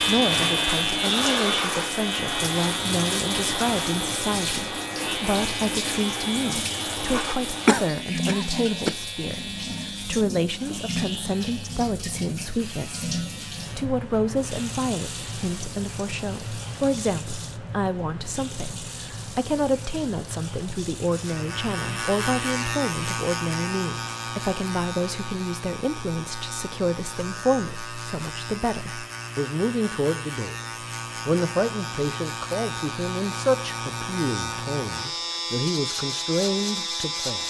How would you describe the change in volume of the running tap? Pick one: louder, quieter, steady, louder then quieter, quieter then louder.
quieter.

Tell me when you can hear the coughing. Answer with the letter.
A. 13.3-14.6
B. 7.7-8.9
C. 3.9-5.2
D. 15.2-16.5
B.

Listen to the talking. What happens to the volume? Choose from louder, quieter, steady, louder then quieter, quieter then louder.
steady.